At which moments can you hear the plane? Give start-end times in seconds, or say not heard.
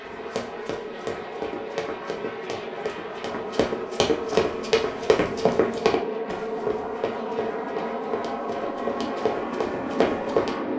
0.0-10.7.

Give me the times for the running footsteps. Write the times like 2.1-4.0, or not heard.
0.1-10.5.